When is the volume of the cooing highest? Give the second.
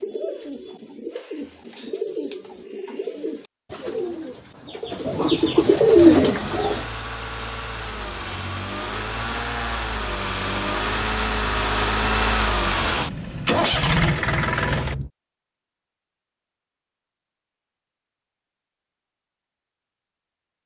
6 s.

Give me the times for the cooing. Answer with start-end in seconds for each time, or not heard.
0.0-6.8.